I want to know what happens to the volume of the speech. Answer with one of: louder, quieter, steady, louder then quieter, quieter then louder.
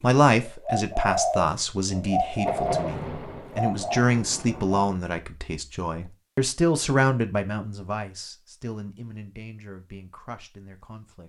quieter.